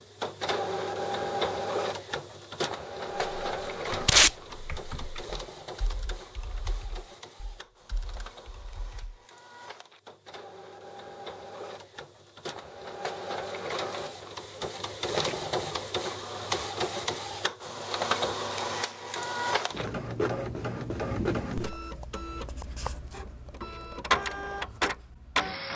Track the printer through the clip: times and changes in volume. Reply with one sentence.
The printer can be heard from 0.0 to 25.7 s, getting quieter then louder.